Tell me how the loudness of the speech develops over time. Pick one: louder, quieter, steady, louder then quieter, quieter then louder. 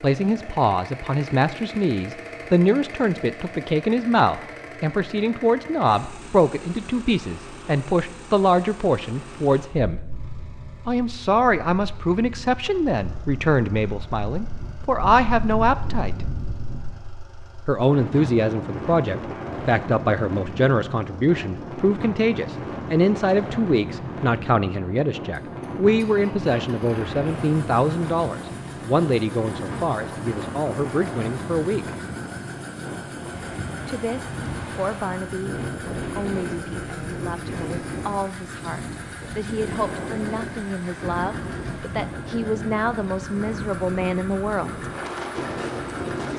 quieter.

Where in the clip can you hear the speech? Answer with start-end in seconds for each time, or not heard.
0.0-10.0, 10.8-16.2, 17.6-31.9, 33.9-44.9.